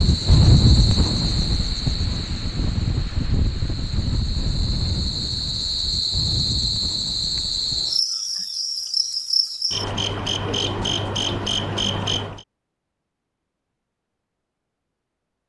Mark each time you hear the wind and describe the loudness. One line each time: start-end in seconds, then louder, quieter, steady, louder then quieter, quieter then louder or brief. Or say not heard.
0.0-7.9 quieter.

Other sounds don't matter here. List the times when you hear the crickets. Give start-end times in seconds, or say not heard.
0.0-12.4.